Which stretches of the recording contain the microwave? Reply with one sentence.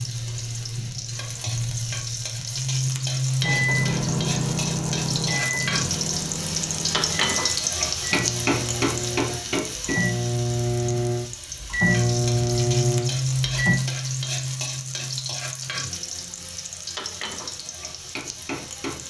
The microwave can be heard from 3.4 to 13.8 s.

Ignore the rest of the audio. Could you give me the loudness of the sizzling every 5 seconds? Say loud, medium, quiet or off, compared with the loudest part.
loud, loud, loud, medium.